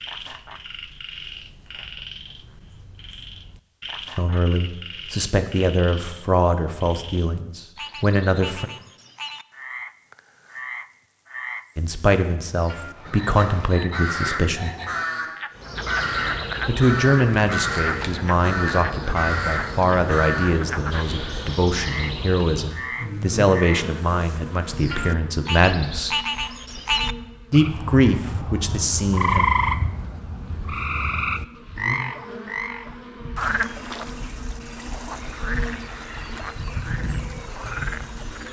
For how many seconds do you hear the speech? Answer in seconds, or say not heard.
19 s.